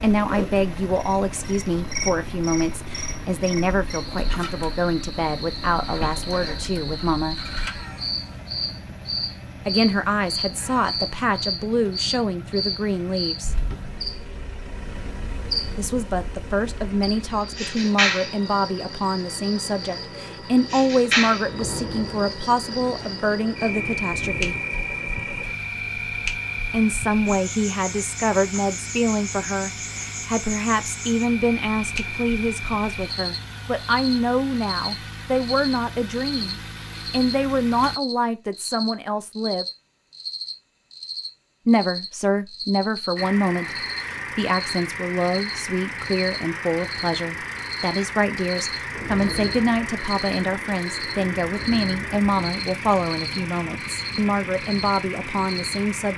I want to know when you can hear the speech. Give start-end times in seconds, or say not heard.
0.0-7.4, 9.7-13.6, 15.8-24.6, 26.7-39.6, 41.6-56.1.